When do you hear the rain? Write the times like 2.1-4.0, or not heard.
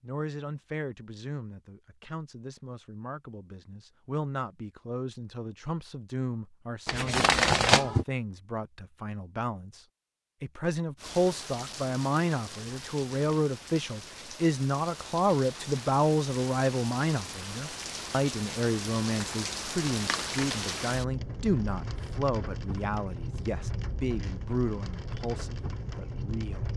10.9-26.7.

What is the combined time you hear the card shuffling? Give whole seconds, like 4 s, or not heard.
2 s.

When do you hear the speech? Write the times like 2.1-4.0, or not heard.
0.0-26.7.